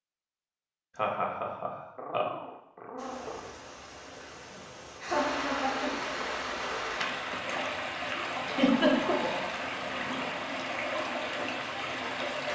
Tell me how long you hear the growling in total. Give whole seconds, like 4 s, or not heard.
4 s.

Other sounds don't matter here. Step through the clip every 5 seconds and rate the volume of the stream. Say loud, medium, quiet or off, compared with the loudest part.
quiet, loud, loud.